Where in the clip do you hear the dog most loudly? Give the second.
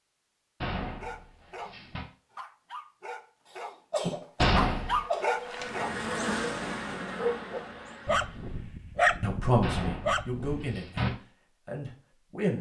9 s.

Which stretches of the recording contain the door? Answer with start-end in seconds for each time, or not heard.
0.6-2.0, 4.4-5.0, 9.6-11.1.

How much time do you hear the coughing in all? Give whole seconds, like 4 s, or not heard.
2 s.